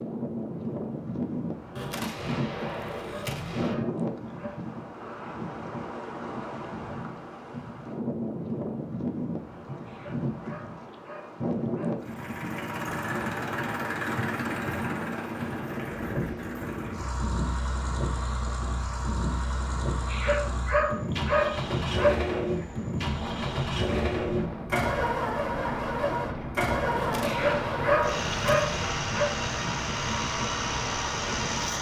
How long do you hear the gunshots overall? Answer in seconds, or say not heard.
4 s.